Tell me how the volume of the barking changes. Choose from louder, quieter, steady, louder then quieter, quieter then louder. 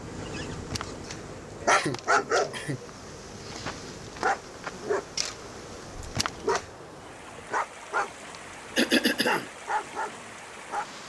louder then quieter.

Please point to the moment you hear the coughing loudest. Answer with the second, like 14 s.
9 s.